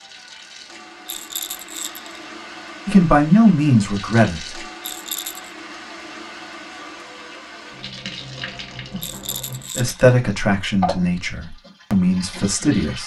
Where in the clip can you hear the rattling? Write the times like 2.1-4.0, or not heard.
1.1-2.2, 4.8-5.5, 9.0-10.0.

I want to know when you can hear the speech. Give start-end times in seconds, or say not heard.
2.9-4.6, 9.8-13.0.